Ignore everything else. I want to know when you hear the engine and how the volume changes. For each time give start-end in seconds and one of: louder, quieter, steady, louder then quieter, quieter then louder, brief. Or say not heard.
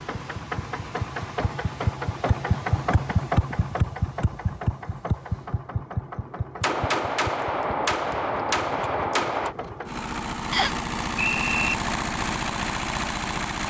0.0-13.6 quieter then louder.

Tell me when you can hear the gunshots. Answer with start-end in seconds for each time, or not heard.
6.6-9.6.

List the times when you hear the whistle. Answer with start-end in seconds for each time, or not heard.
10.5-11.8.